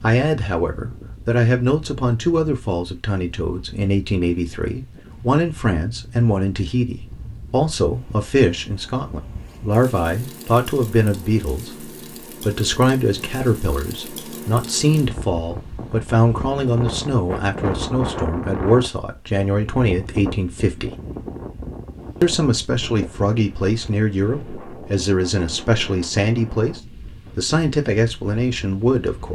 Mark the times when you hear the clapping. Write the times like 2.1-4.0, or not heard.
not heard.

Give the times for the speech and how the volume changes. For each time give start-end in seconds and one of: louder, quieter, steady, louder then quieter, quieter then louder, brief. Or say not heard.
0.0-20.9 steady
22.2-29.2 steady.